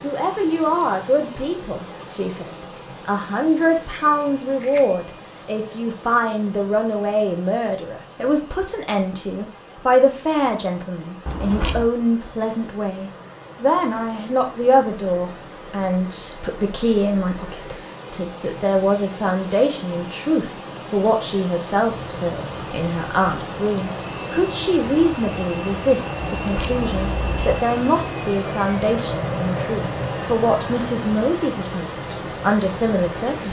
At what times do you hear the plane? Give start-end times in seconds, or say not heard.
21.9-33.4.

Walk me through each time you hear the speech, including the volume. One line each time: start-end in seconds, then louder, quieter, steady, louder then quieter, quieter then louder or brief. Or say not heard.
0.0-33.4 steady.